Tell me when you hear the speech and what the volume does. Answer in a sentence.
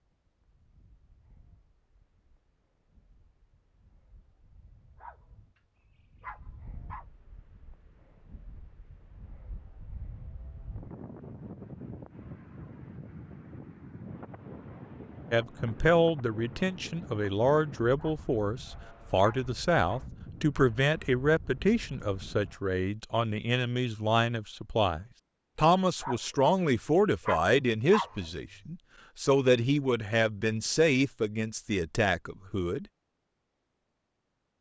The speech can be heard from 15.3 to 32.9 s, at a steady volume.